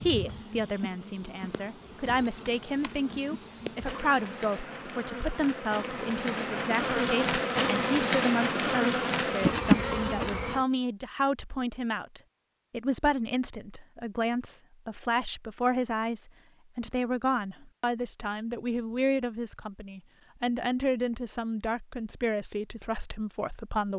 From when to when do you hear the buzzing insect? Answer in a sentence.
You can hear the buzzing insect from 0.0 to 10.7 s.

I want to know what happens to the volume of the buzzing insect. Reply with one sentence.
The volume of the buzzing insect goes up.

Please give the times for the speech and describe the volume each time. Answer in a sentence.
The speech can be heard from 0.0 to 23.9 s, at a steady volume.